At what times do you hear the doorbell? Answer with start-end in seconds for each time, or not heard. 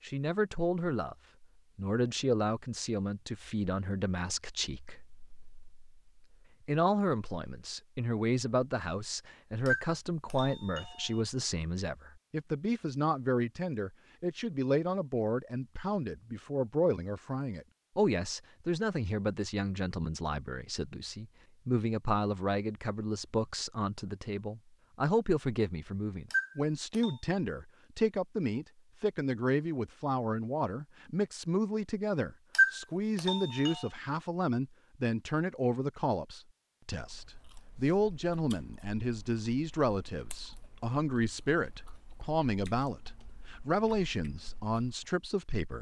9.7-11.1, 26.3-27.1, 32.5-33.8.